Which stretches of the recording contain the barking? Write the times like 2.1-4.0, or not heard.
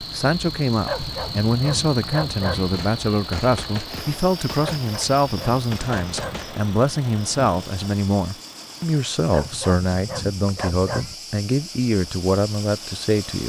0.8-2.7, 4.6-6.5, 9.3-11.2.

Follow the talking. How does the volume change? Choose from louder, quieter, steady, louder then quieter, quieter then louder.
steady.